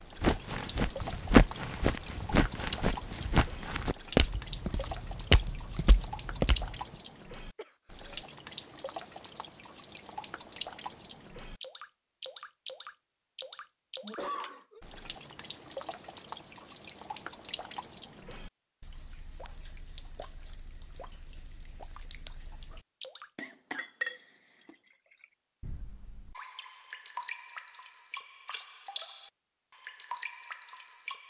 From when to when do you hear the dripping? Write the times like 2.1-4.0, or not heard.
0.0-31.2.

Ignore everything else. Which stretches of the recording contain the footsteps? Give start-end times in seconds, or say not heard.
0.2-6.8.